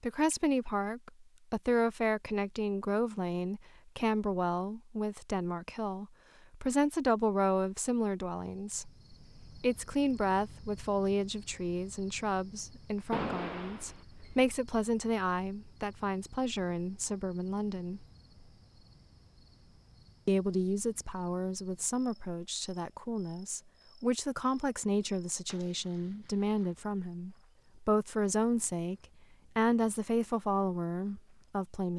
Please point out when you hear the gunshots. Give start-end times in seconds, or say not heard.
13.1-14.4, 25.4-26.4.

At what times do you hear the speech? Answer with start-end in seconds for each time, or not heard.
0.0-8.9, 9.6-18.1, 20.2-28.9, 29.6-31.9.